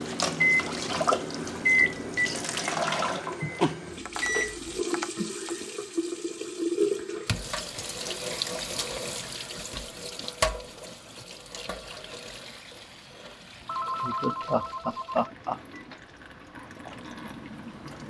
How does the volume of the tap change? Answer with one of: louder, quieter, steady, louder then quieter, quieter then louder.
quieter.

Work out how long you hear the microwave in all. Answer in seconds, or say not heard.
5 s.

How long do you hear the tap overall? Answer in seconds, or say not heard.
18 s.